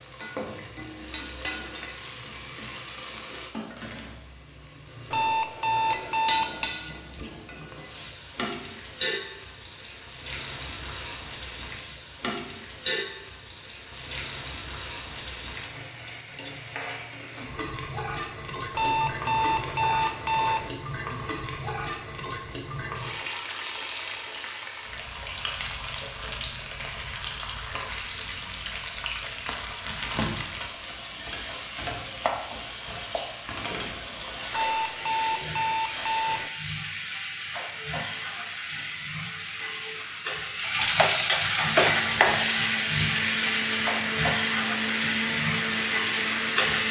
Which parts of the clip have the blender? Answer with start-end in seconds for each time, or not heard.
41.6-46.8.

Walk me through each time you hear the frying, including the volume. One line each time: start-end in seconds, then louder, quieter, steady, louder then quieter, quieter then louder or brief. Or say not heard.
0.0-46.8 louder.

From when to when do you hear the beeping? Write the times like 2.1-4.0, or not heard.
5.1-6.7, 18.8-20.7, 34.5-36.5.